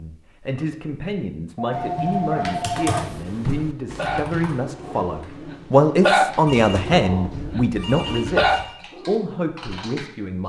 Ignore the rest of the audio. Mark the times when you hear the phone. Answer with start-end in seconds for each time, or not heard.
1.6-3.0, 6.5-8.7.